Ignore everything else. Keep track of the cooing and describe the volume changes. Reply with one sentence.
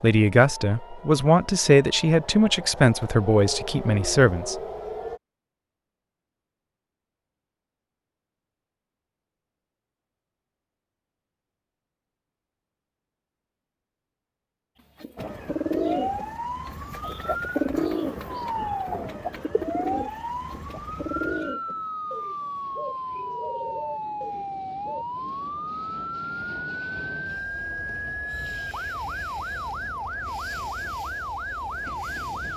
The loudness of the cooing goes down.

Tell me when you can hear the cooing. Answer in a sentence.
The cooing can be heard from 14.9 to 25.1 s.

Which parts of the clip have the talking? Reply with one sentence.
You can hear the talking from 0.0 to 4.5 s.